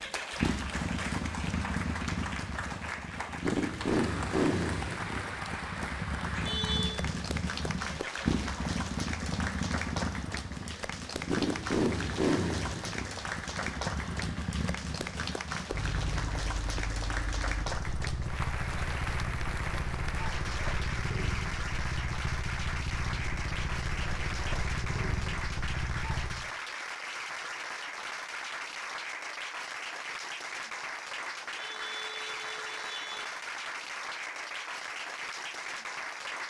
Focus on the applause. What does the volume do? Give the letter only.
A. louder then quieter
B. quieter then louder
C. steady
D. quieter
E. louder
C.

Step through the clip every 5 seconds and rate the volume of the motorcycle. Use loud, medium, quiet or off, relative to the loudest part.
loud, loud, loud, medium, medium, medium, off, off.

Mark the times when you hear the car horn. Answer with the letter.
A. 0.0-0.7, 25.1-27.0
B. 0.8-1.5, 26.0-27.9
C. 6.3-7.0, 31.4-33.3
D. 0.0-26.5
C.